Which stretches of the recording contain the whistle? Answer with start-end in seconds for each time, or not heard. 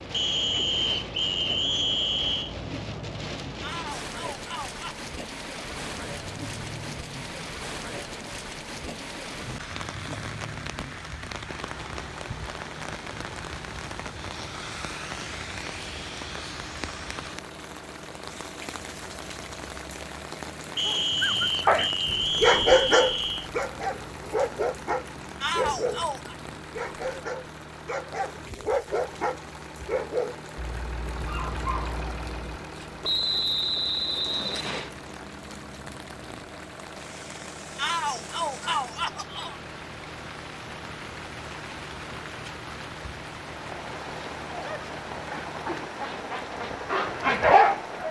0.1-2.5, 20.8-23.5, 33.0-34.9.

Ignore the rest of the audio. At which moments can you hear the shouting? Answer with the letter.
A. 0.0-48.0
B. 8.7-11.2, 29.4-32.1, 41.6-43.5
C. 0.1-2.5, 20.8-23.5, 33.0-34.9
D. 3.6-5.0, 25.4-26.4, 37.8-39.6
D.